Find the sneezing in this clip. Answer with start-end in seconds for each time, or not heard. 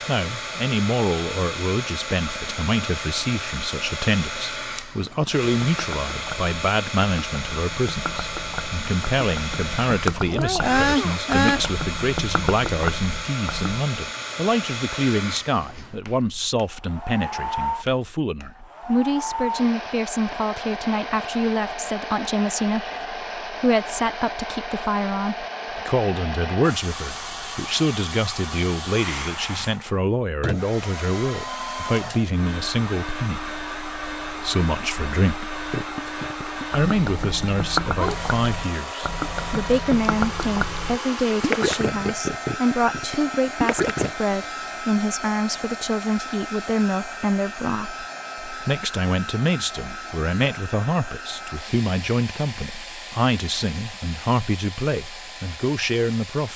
10.2-11.6.